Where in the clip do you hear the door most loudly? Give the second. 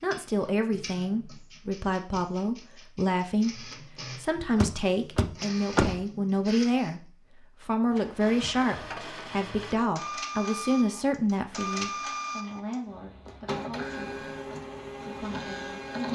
6 s.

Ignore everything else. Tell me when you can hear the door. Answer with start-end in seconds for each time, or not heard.
4.5-6.0.